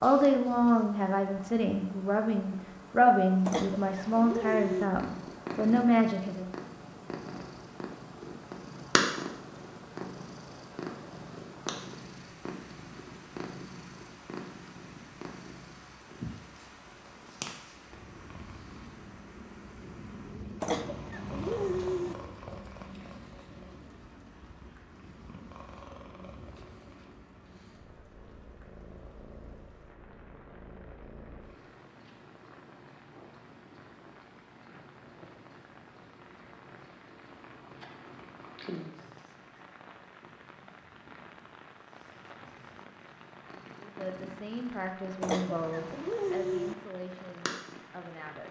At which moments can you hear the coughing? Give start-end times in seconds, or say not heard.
3.5-4.9, 20.6-22.1, 45.2-46.8.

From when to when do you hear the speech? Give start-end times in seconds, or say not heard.
0.0-6.5, 43.8-48.4.